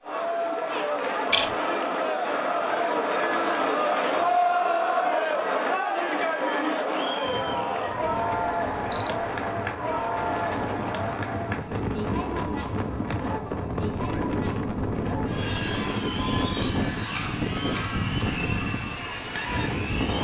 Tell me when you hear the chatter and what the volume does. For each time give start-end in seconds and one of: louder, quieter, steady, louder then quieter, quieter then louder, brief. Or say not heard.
0.0-20.1 quieter.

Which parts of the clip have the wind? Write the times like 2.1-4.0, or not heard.
7.2-20.1.